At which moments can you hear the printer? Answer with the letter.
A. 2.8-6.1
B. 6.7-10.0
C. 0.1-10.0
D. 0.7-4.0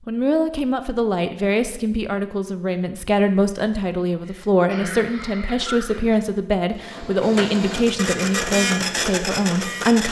B.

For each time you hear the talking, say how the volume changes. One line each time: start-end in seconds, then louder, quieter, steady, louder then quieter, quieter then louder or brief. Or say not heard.
0.1-10.0 steady.